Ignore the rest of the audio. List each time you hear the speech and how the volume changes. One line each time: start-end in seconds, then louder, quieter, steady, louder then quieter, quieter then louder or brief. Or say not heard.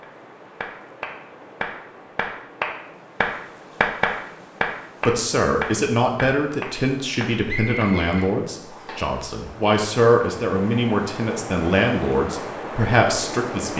5.0-13.7 steady.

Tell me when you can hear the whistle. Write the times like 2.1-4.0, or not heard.
7.5-9.1.